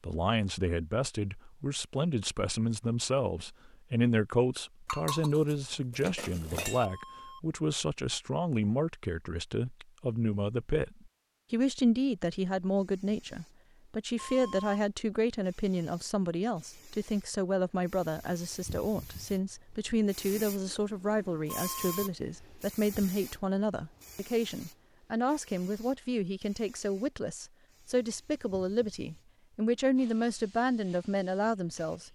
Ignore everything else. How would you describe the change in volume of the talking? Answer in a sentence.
The volume of the talking stays about the same.